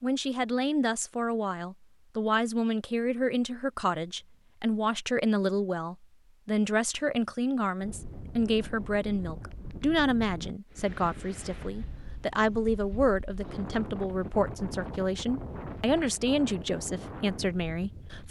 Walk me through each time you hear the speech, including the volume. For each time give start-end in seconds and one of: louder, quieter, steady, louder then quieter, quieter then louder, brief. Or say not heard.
0.0-18.2 steady.